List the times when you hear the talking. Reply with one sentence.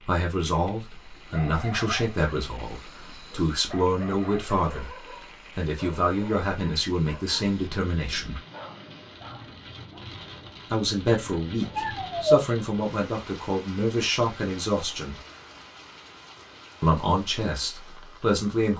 You can hear the talking from 0.1 to 4.9 s, from 5.5 to 8.4 s, from 10.7 to 15.2 s and from 16.8 to 18.7 s.